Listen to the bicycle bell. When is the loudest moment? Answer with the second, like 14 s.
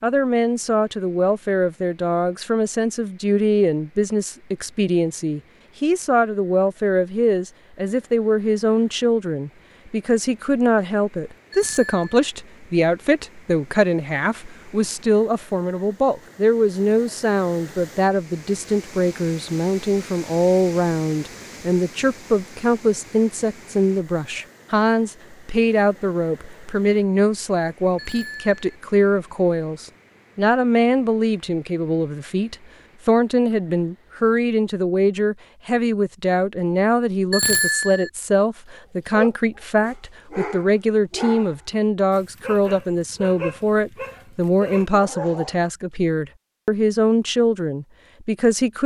38 s.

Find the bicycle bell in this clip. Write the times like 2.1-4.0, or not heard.
11.5-12.2, 27.9-28.6, 37.3-38.1.